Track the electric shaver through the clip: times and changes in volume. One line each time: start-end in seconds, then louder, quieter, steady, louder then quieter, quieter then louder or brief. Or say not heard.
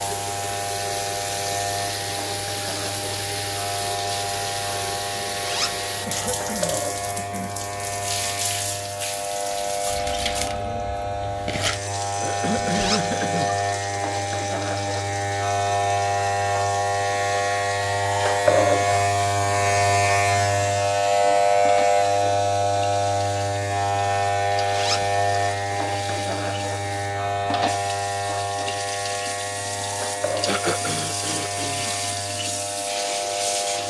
0.0-33.8 louder then quieter.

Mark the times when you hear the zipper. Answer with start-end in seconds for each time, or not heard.
5.4-5.8, 12.7-13.2, 24.7-25.1.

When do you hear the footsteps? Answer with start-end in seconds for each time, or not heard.
not heard.